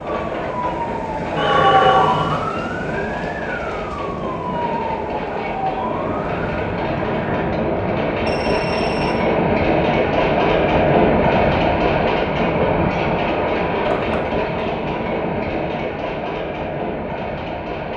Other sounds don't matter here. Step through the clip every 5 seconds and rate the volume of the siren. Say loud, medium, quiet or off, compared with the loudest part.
loud, medium, off, off.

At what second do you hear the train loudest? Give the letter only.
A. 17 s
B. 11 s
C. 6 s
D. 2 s
B.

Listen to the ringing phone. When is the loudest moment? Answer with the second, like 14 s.
2 s.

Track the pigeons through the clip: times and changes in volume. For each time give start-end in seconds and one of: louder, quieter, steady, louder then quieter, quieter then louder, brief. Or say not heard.
not heard.